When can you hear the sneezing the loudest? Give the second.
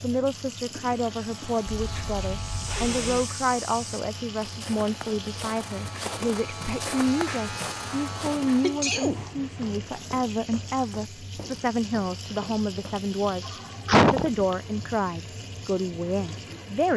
14 s.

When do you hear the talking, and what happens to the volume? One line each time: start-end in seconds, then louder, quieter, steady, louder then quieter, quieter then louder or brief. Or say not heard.
0.0-16.9 steady.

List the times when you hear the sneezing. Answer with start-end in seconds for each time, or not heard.
1.6-3.3, 8.6-9.2, 13.4-14.6.